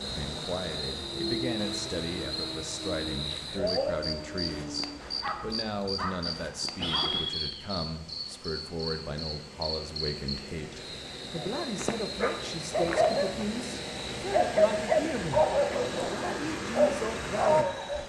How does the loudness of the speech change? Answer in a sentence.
The volume of the speech stays about the same.